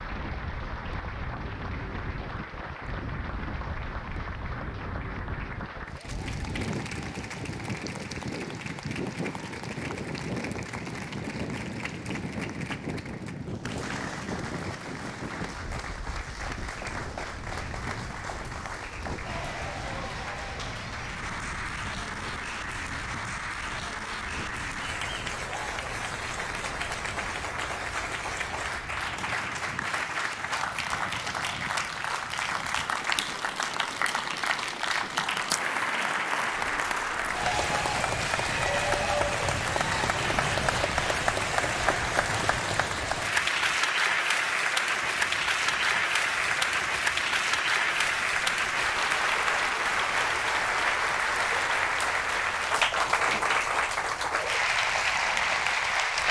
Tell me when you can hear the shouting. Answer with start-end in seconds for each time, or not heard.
not heard.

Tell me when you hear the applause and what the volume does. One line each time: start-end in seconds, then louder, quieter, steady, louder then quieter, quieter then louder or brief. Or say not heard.
0.0-56.2 louder.